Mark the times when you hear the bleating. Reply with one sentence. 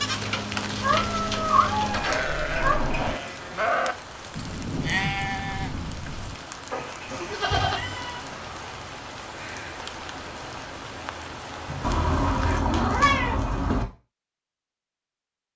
The bleating can be heard from 0.0 to 7.8 s.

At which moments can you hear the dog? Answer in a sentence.
The dog can't be heard in this clip.